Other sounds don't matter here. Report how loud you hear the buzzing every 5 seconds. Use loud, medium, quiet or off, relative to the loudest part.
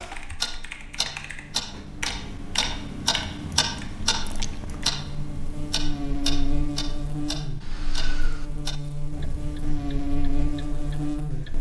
quiet, loud, loud.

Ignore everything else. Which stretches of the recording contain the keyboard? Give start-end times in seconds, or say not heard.
0.0-5.0.